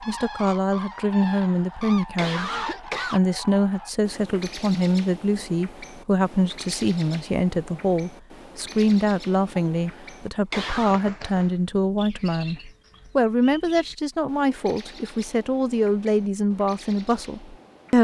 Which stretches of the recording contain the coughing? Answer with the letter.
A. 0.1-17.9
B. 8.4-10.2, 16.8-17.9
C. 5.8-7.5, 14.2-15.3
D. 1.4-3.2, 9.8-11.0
D.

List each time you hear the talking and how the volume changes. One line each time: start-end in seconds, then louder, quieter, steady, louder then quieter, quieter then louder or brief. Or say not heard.
0.1-17.9 steady.